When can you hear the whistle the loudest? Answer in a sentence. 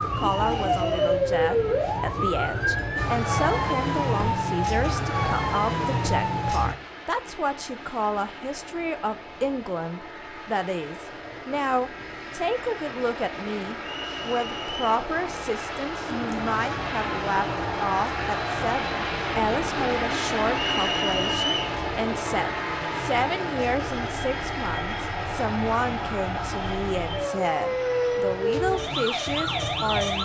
The volume of the whistle peaks at 21 seconds.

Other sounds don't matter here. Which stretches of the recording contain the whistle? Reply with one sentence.
The whistle can be heard from 0.1 to 1.1 s, from 13.8 to 14.9 s and from 20.5 to 21.8 s.